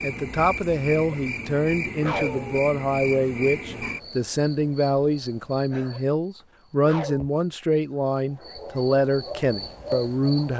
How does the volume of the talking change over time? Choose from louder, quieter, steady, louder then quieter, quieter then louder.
steady.